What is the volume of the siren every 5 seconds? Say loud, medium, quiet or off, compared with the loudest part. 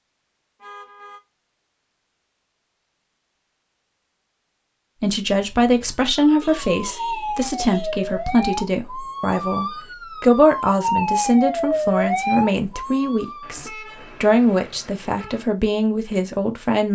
off, medium, loud, off.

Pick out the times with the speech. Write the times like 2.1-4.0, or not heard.
5.0-16.9.